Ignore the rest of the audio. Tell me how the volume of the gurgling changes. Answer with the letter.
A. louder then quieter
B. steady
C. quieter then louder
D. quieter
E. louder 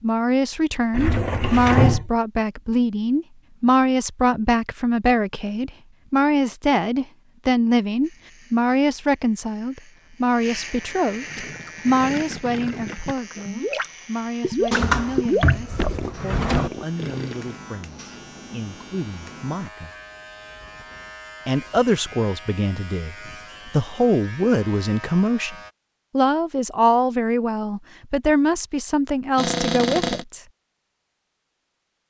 A.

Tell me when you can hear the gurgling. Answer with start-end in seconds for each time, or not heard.
11.1-17.6.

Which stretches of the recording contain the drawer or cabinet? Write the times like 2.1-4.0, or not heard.
0.9-2.1, 14.7-16.7, 29.4-30.2.